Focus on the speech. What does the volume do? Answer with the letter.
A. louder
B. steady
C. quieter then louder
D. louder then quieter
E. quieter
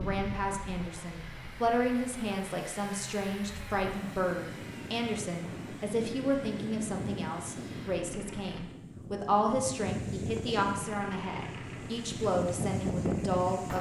B.